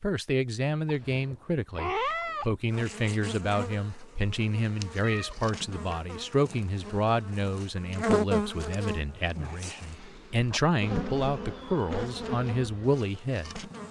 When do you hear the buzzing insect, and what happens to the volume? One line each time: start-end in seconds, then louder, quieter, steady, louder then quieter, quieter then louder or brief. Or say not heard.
2.7-13.8 louder then quieter.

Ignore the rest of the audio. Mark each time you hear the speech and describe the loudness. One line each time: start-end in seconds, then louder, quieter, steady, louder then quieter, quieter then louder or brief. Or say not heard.
0.0-13.7 steady.